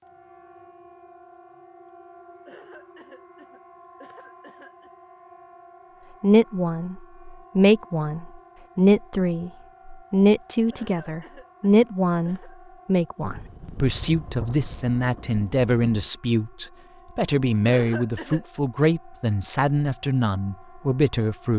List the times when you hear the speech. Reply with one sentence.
You can hear the speech from 6.2 to 21.5 s.